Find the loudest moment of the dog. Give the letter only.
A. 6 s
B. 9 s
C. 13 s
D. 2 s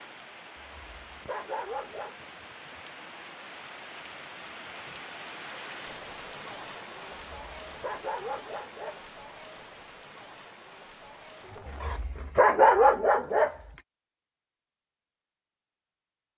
C.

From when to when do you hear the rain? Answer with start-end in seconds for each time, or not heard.
0.0-12.2.